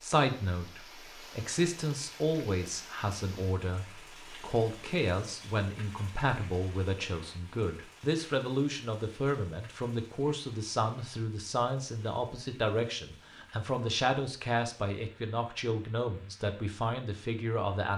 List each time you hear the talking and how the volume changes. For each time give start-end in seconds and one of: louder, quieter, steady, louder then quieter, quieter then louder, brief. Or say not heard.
0.0-17.9 steady.